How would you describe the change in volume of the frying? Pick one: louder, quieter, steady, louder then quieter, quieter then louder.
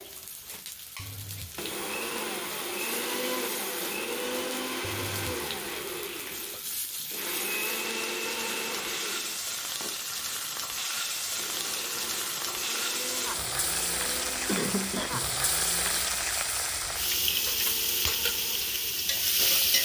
louder.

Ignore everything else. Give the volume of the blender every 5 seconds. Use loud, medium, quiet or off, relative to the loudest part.
loud, loud, medium, medium.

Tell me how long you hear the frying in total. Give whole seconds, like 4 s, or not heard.
20 s.